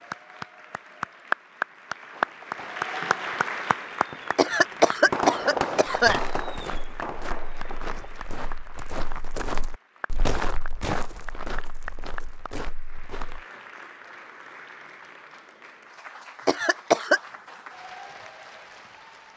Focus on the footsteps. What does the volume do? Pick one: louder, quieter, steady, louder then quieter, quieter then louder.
louder then quieter.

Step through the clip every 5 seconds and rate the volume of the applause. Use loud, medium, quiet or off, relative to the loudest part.
loud, quiet, quiet, quiet.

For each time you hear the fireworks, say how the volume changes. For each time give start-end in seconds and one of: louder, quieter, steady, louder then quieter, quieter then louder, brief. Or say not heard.
2.1-8.2 louder then quieter.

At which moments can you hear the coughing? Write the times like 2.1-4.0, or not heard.
4.3-6.2, 16.4-17.2.